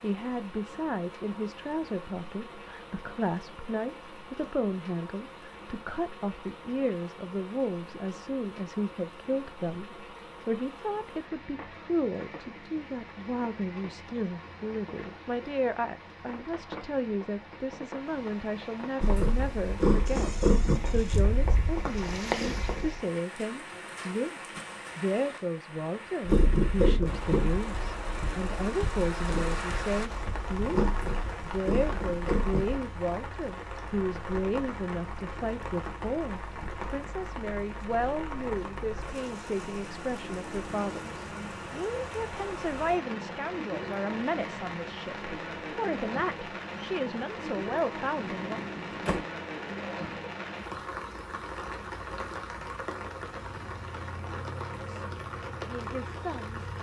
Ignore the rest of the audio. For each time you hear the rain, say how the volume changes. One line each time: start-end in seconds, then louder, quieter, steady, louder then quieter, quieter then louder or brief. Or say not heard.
0.0-56.7 louder.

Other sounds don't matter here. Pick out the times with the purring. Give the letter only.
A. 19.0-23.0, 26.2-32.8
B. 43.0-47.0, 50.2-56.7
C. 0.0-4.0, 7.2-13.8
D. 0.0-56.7
A.